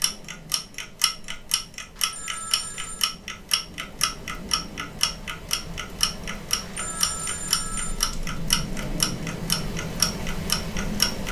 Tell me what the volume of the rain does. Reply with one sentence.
The volume of the rain goes up.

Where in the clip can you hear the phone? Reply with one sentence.
The phone can be heard from 1.9 to 3.0 s and from 6.6 to 8.1 s.